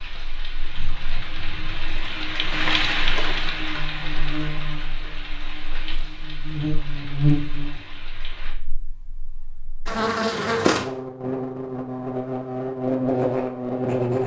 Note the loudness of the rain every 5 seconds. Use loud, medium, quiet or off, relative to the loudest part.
loud, medium, off.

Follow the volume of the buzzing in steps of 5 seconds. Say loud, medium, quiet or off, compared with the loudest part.
quiet, medium, loud.